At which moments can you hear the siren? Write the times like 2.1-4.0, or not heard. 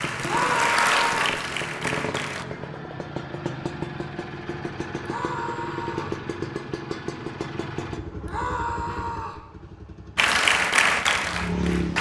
not heard.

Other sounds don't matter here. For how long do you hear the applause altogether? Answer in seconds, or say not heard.
4 s.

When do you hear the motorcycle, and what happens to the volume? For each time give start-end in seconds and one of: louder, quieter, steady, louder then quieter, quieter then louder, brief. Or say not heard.
0.0-11.9 quieter.